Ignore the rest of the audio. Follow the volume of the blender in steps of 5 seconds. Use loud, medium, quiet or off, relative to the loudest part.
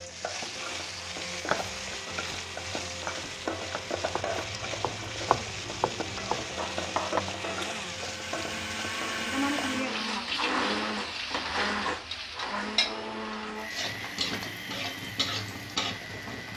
medium, loud, loud, medium.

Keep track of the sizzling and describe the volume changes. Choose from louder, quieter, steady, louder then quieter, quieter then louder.
steady.